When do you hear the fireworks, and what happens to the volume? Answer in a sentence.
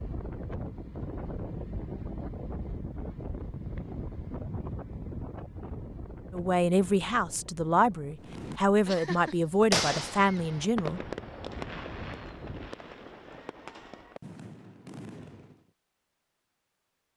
The fireworks can be heard from 8.2 to 15.7 s, getting quieter.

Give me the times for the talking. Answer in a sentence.
You can hear the talking from 6.3 to 11.0 s.